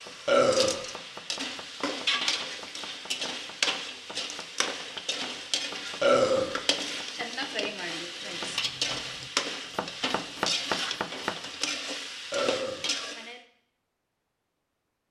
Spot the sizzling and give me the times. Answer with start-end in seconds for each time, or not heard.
0.0-13.4.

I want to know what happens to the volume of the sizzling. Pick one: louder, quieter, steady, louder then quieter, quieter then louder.
steady.